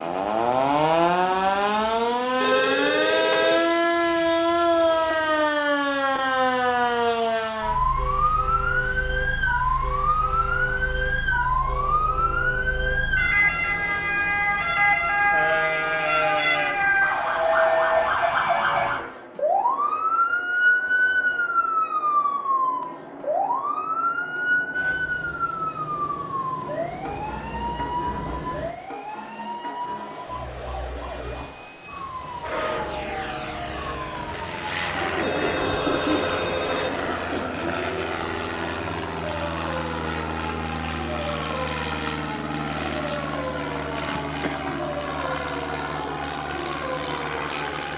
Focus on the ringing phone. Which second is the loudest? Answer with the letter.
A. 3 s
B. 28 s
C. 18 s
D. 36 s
A.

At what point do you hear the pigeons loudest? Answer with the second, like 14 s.
36 s.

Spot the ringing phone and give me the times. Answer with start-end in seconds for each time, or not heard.
2.4-3.6, 35.1-37.1.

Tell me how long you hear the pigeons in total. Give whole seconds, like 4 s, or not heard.
3 s.